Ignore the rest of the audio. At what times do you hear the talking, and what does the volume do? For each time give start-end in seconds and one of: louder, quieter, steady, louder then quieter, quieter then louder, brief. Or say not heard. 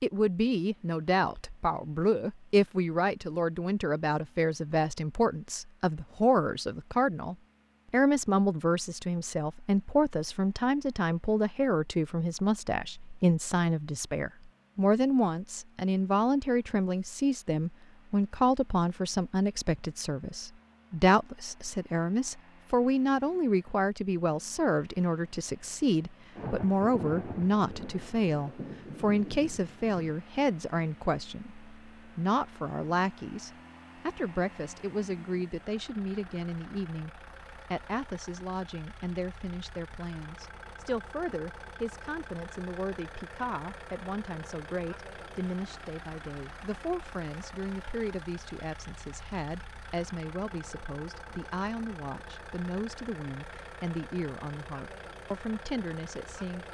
0.0-56.6 quieter.